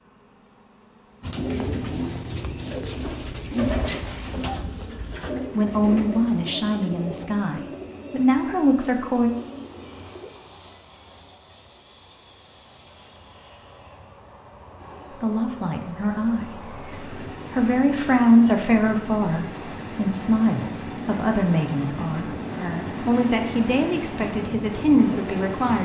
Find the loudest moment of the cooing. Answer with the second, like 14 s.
4 s.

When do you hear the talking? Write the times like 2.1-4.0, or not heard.
5.5-9.3, 15.2-16.6, 17.5-25.8.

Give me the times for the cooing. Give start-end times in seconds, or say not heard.
1.2-10.3.